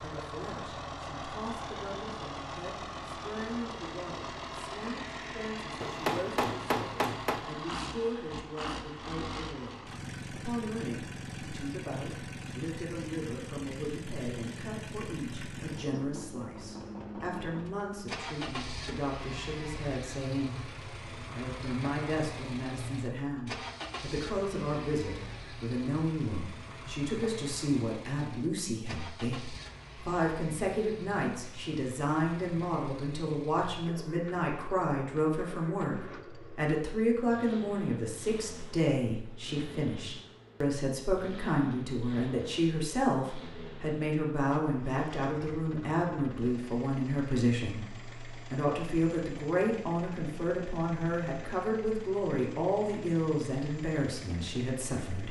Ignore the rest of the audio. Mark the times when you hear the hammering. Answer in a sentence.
The hammering can be heard from 5.8 to 7.5 s.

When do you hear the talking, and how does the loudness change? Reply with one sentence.
You can hear the talking from 0.0 to 55.2 s, getting louder.